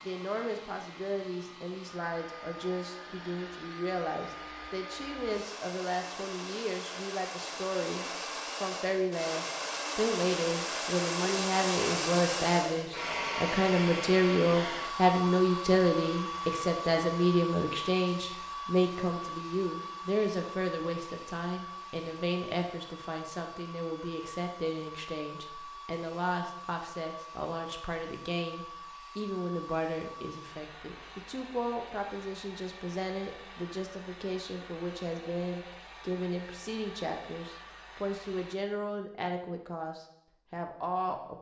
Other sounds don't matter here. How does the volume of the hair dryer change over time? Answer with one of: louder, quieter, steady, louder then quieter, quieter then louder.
louder then quieter.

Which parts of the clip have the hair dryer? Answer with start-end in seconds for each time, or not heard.
0.0-38.5.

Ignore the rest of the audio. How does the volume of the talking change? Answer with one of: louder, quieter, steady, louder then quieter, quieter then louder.
louder then quieter.